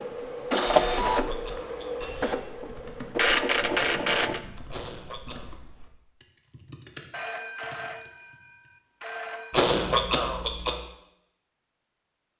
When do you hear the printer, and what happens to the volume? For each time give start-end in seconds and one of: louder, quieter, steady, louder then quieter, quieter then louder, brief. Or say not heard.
0.0-4.4 quieter then louder.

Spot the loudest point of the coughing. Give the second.
10 s.